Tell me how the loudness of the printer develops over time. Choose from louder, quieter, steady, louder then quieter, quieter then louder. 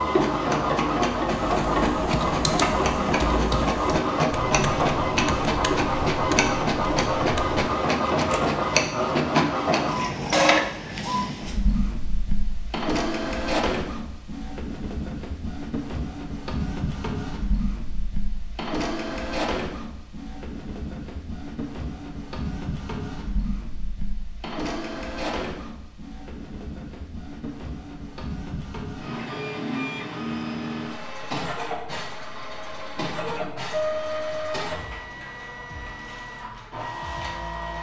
quieter.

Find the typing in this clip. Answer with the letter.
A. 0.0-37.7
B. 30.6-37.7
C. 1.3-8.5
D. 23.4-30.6
C.